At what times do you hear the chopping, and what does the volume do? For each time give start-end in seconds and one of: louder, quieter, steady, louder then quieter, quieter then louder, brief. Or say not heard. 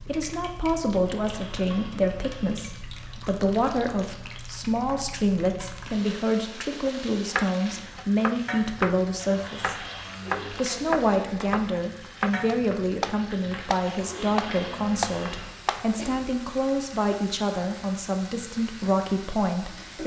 6.8-15.9 steady.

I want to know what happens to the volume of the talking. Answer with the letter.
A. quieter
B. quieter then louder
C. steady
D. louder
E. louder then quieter
C.